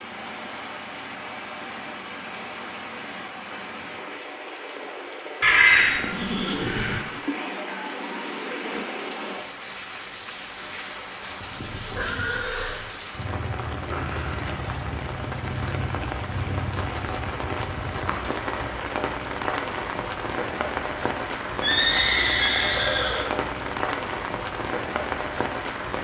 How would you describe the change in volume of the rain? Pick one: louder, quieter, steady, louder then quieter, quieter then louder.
louder.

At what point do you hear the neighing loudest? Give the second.
6 s.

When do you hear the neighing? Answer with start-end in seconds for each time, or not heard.
5.4-7.0, 11.6-12.8, 21.6-23.3.